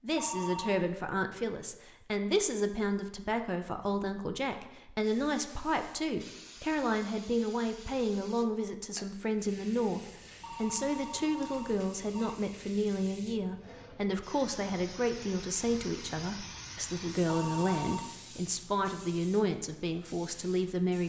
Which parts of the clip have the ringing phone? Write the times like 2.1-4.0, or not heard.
0.1-0.9, 10.4-12.3, 17.2-18.1.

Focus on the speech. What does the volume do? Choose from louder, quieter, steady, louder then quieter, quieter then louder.
steady.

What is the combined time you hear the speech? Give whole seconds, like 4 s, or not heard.
21 s.